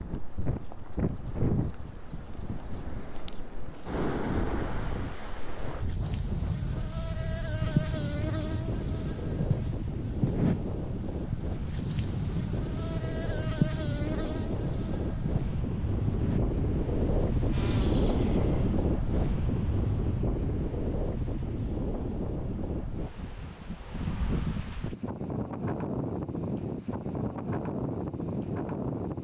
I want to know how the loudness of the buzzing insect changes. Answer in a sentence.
The volume of the buzzing insect goes up, then down.